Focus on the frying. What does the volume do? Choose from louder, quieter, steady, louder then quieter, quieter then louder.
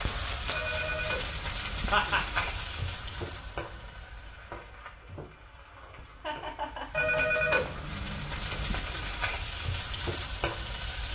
quieter then louder.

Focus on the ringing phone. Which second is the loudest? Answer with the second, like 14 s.
7 s.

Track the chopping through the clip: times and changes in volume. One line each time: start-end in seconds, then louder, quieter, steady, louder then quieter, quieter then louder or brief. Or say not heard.
not heard.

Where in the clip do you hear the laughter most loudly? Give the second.
2 s.